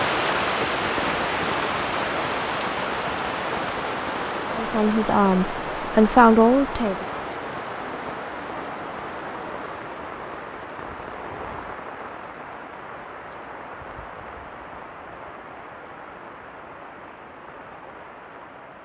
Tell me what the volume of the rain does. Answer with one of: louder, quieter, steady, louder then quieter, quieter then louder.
quieter.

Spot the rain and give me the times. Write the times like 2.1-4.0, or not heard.
0.0-18.8.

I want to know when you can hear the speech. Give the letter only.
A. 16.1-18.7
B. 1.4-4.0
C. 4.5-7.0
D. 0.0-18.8
C.